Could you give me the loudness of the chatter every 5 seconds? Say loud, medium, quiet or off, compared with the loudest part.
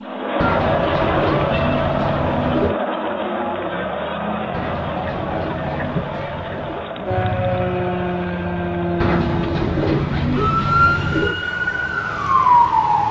loud, medium, quiet.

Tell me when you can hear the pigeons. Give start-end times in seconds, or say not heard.
0.3-2.8, 4.5-6.9, 9.0-11.3.